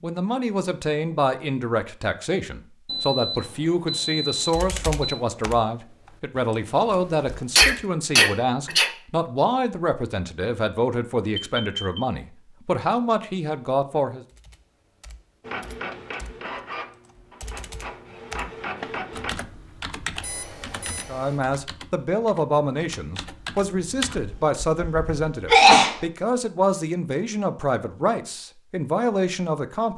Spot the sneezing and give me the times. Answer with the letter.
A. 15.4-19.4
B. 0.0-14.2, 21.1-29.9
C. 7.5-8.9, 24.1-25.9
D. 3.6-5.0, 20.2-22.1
C.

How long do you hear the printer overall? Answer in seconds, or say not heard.
4 s.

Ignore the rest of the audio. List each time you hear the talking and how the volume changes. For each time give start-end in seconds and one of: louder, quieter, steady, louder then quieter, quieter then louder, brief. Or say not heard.
0.0-14.2 steady
21.1-29.9 steady.